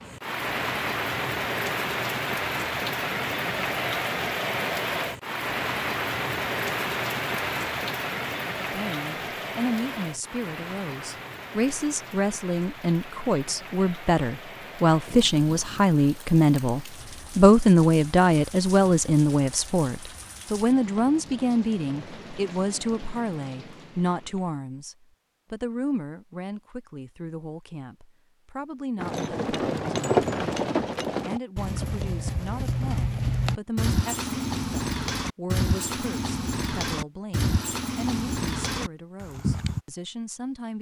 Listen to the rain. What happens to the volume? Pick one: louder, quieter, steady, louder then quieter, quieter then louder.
quieter.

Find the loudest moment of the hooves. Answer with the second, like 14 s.
30 s.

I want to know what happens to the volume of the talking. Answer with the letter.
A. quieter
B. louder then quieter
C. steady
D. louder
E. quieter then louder
B.